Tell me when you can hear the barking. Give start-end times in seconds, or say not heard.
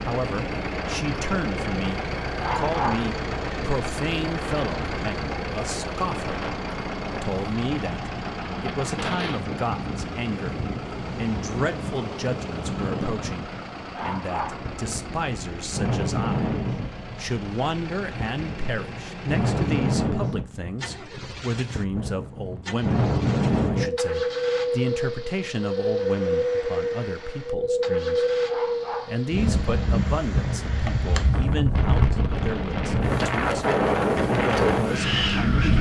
2.4-3.1, 13.9-14.7, 28.4-29.2.